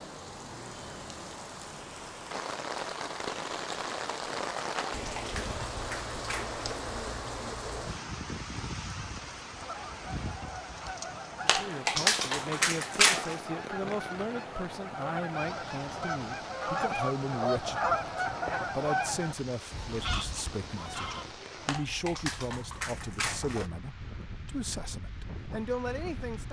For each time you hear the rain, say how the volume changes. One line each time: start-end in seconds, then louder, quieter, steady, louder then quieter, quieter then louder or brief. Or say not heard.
0.0-26.4 quieter.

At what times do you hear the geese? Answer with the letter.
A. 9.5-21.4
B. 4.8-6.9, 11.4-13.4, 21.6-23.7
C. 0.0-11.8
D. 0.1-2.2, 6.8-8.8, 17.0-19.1
A.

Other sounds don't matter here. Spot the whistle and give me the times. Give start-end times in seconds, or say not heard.
not heard.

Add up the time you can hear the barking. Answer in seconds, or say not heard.
6 s.